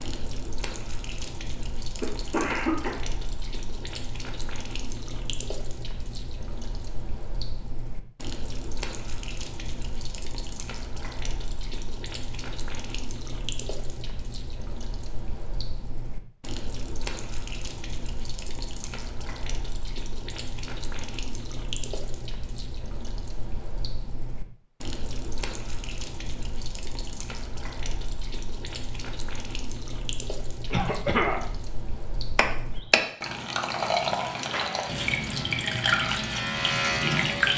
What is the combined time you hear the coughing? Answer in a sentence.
The coughing can be heard for 2 seconds in total.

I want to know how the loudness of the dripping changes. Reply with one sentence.
The loudness of the dripping goes up.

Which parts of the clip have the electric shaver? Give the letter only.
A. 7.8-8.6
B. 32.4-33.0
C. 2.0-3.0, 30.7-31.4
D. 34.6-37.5
D.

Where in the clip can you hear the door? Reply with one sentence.
The door can be heard from 32.4 to 33.0 s.